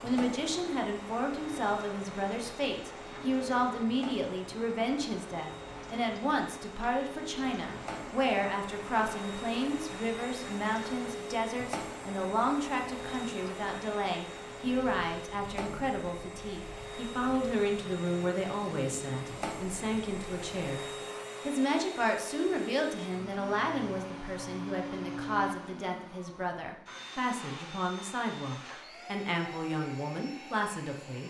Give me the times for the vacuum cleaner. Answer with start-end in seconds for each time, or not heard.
0.0-31.2.